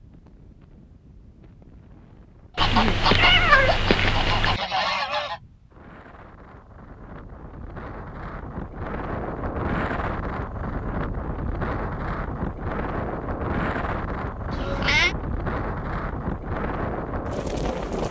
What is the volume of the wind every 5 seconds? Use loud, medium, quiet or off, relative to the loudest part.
quiet, medium, loud, loud.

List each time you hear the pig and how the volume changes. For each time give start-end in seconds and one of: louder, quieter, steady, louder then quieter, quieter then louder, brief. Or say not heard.
not heard.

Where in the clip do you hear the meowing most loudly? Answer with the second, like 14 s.
3 s.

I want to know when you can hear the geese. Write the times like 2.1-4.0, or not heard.
2.5-5.4.